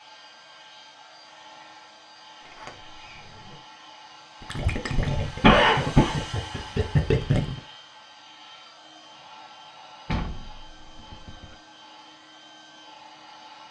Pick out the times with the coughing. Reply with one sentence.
You can hear the coughing from 5.4 to 6.2 s.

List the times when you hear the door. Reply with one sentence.
You can hear the door from 2.5 to 3.6 s and from 10.1 to 11.6 s.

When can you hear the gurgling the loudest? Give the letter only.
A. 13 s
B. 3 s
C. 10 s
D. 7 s
D.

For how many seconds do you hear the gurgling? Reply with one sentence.
The gurgling can be heard for 3 seconds in total.